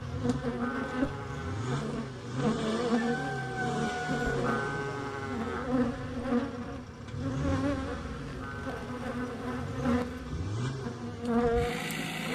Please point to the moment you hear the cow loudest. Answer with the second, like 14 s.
5 s.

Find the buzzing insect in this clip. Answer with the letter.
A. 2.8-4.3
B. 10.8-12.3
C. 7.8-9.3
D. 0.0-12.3
D.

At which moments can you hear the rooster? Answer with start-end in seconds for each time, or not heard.
2.8-4.3.